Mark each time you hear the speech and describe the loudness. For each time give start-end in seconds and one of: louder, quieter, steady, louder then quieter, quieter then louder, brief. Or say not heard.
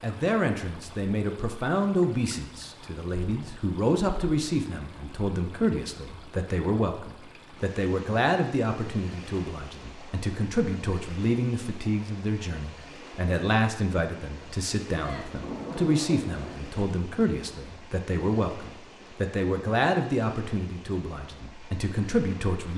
0.0-22.7 steady.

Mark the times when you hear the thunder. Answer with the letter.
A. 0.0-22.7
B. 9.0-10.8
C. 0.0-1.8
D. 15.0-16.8
D.